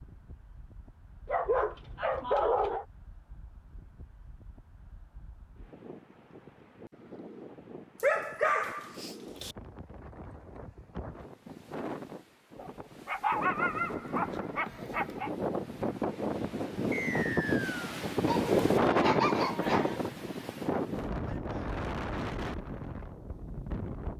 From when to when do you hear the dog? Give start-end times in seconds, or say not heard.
1.2-2.9, 8.0-9.6, 12.6-15.3, 18.2-20.0.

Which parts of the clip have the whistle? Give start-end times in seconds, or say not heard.
16.9-17.8.